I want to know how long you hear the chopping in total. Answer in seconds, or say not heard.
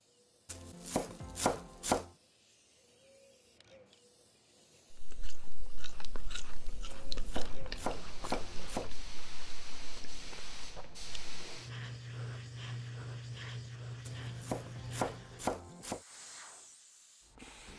6 s.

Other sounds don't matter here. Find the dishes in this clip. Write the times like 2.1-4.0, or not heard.
not heard.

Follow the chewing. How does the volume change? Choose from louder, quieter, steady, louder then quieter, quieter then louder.
louder then quieter.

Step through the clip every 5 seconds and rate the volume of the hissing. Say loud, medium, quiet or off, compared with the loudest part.
quiet, medium, loud, medium.